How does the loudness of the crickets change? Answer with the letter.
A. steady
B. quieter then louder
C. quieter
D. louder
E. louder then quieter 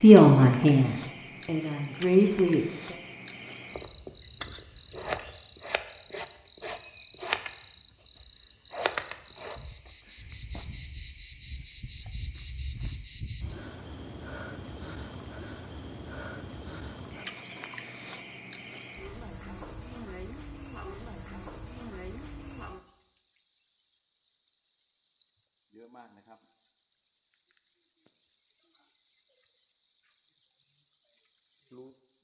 A.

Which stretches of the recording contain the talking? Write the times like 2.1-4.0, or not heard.
0.0-3.0.